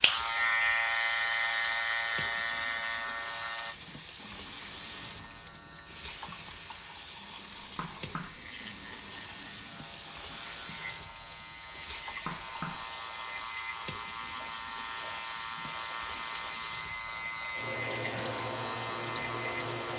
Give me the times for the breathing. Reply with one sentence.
The breathing can't be heard in this clip.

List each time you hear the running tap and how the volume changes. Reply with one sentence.
The running tap can be heard from 0.0 to 19.9 s, at a steady volume.